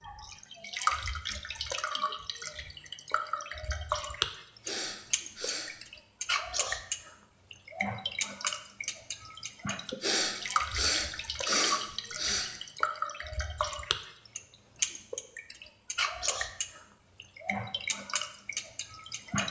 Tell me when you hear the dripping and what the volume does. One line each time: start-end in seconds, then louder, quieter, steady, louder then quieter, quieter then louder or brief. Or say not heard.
0.0-19.4 steady.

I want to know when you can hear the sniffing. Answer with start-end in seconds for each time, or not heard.
4.6-5.7, 10.0-12.5.